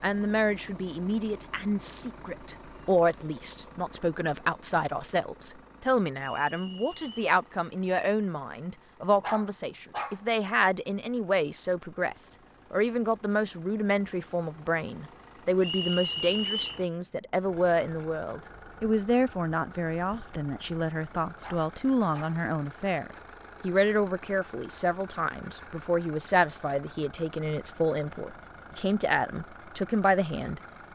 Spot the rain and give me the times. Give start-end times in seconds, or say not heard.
not heard.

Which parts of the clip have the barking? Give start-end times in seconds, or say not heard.
9.2-10.2, 21.4-22.4.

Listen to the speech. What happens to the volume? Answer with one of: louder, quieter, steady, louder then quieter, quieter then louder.
steady.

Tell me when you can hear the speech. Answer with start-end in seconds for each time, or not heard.
0.0-30.9.